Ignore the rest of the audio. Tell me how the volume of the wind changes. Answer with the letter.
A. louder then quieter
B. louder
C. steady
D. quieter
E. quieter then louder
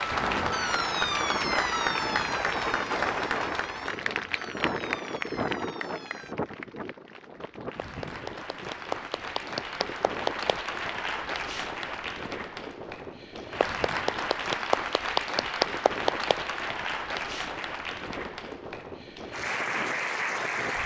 D.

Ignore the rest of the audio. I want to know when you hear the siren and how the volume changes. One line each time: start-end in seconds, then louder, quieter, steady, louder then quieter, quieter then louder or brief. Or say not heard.
0.0-6.3 quieter.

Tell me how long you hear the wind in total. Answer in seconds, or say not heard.
21 s.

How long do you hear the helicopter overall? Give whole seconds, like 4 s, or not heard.
not heard.